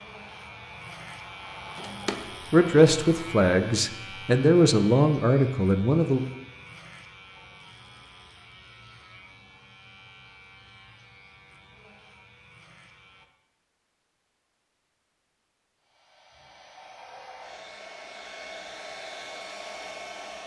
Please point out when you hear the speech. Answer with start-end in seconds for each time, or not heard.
2.5-6.2.